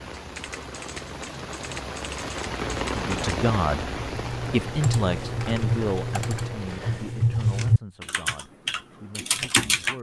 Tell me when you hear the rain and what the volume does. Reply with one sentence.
You can hear the rain from 0.0 to 7.2 s, getting louder then quieter.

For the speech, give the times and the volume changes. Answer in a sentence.
The speech can be heard from 2.9 to 9.9 s, getting quieter.